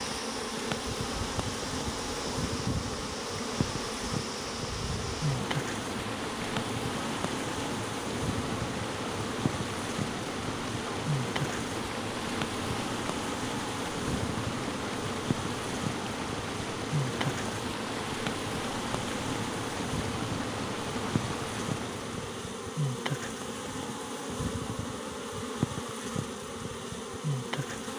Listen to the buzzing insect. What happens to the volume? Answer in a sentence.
The loudness of the buzzing insect stays about the same.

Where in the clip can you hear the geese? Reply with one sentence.
The geese can't be heard in this clip.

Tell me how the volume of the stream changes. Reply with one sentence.
The volume of the stream stays about the same.